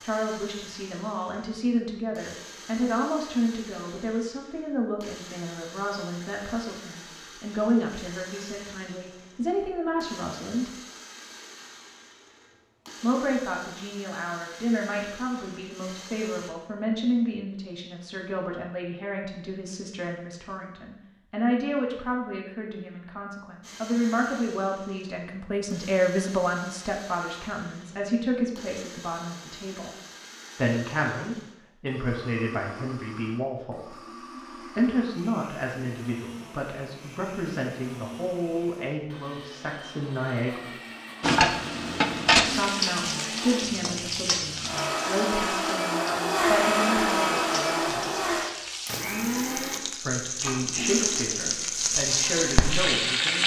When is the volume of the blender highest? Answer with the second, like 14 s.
47 s.